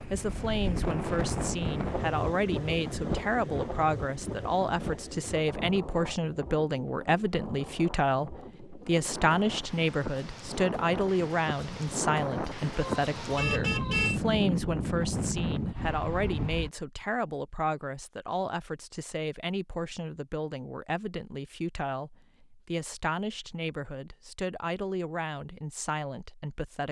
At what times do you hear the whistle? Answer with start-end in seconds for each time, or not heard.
not heard.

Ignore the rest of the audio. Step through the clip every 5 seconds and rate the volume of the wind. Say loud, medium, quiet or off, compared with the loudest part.
loud, medium, loud, loud, off, off.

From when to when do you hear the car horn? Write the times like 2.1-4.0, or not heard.
12.8-14.2.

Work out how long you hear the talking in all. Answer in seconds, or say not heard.
27 s.